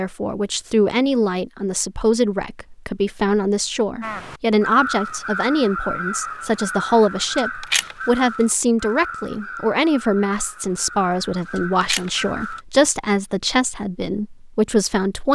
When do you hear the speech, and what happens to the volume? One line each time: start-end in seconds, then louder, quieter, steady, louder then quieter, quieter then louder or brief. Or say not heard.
0.0-15.3 steady.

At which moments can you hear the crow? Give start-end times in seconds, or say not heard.
4.0-12.6.